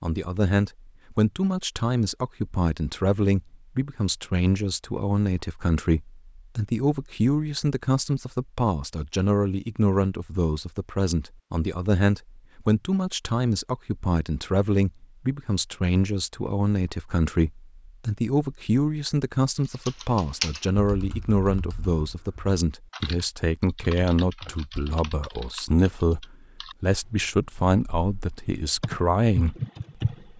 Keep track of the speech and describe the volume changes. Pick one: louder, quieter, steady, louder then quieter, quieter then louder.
steady.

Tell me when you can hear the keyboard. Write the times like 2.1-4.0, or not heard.
19.7-30.2.